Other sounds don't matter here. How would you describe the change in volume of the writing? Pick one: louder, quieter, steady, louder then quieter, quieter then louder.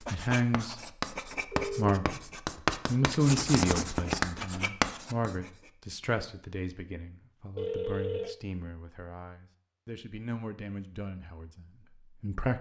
louder.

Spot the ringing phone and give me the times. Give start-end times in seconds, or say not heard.
1.5-2.0, 7.5-8.3.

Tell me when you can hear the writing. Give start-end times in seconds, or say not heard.
0.0-5.5.